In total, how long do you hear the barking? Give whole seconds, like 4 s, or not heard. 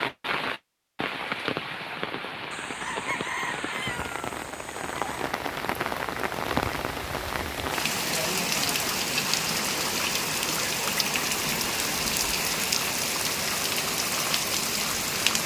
not heard.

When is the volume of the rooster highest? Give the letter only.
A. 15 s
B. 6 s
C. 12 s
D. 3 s
D.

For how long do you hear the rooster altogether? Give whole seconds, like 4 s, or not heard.
3 s.